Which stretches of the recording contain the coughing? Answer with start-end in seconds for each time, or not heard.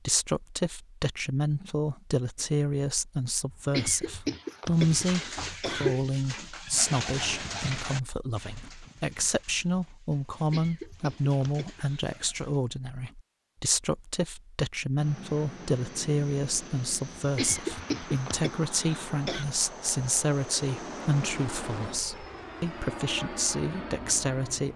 3.5-6.0, 10.5-11.9, 17.1-19.4.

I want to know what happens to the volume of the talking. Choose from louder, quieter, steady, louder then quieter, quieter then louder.
steady.